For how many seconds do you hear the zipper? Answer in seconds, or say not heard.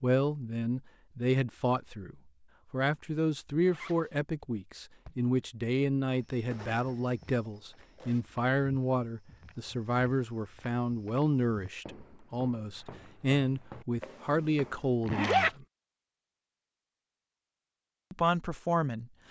3 s.